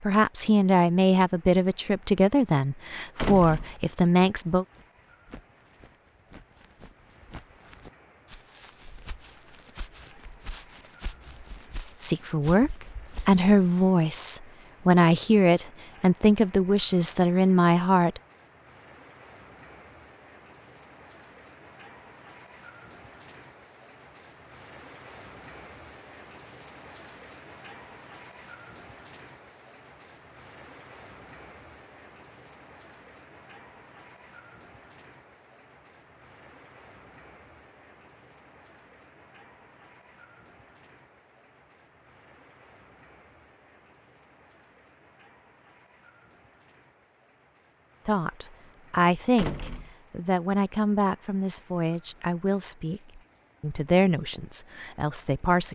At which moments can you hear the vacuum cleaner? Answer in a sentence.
You can't hear the vacuum cleaner here.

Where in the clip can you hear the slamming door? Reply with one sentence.
You can hear the slamming door from 3.1 to 3.8 s and from 49.4 to 50.0 s.